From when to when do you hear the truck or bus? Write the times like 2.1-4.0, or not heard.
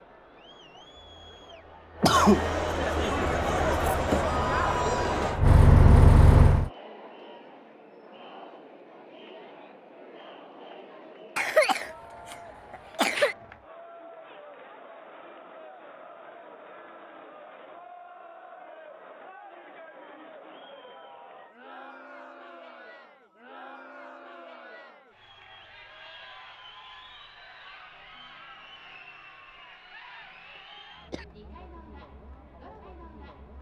3.1-6.7.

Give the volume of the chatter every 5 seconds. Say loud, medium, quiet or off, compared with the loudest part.
loud, medium, quiet, quiet, quiet, quiet, quiet.